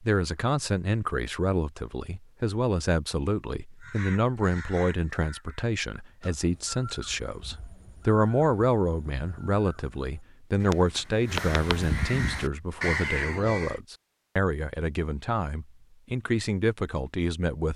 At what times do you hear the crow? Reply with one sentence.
The crow can be heard from 3.8 to 13.8 s.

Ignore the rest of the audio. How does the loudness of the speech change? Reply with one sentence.
The loudness of the speech stays about the same.